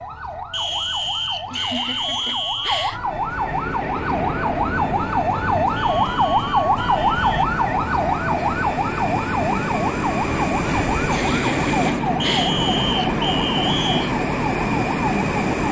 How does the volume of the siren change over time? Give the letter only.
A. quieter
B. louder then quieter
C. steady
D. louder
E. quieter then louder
B.